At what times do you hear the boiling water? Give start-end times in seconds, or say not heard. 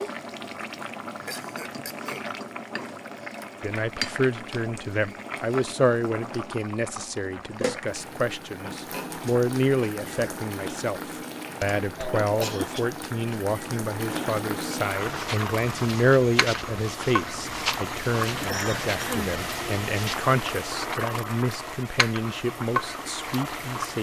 0.0-23.9.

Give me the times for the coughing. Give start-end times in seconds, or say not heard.
1.2-2.3, 11.6-12.8, 18.4-19.4.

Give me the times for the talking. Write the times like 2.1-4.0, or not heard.
3.6-23.9.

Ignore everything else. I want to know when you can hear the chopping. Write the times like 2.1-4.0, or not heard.
not heard.